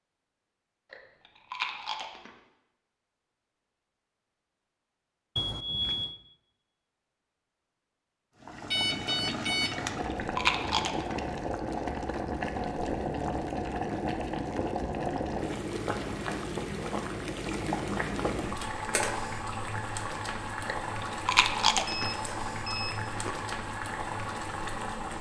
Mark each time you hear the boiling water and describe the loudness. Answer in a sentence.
You can hear the boiling water from 8.4 to 25.1 s, at a steady volume.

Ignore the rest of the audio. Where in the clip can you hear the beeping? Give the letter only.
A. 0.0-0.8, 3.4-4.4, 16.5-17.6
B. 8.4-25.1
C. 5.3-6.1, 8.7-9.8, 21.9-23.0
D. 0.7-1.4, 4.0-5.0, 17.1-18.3
C.